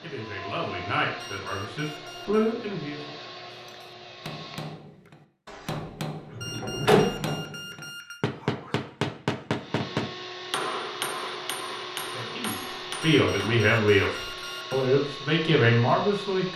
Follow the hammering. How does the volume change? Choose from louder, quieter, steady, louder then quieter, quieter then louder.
louder then quieter.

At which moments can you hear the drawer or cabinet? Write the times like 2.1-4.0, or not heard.
5.5-7.3.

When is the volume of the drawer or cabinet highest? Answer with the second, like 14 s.
7 s.